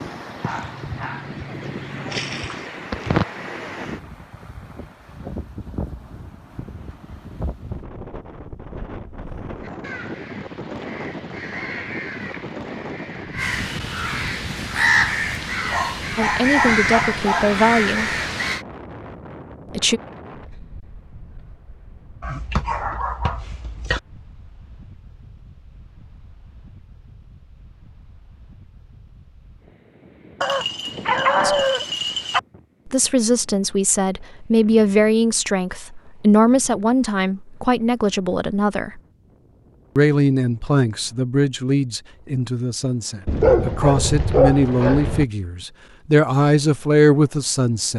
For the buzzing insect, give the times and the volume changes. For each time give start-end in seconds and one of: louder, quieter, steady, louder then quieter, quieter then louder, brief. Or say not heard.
not heard.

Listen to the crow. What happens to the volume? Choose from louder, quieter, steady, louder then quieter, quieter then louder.
louder.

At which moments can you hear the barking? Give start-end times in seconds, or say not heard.
0.4-3.2, 15.7-17.6, 22.2-24.0, 30.4-32.4, 43.2-45.2.